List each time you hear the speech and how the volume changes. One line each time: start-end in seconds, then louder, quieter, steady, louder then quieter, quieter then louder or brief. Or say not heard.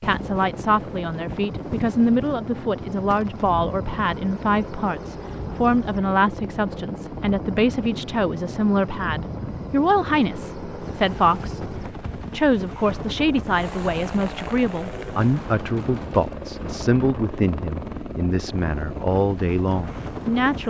0.0-20.6 steady.